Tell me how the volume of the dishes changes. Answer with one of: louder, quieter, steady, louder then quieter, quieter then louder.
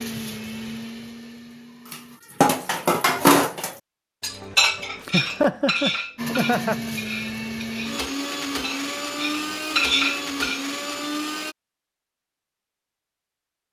quieter then louder.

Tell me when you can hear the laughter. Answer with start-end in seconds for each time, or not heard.
5.0-6.8.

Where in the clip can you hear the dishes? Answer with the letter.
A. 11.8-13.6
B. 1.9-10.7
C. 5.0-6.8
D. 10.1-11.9
B.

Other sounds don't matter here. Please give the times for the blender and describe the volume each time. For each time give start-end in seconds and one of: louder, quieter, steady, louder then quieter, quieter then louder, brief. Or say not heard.
0.0-2.2 brief
6.2-11.6 steady.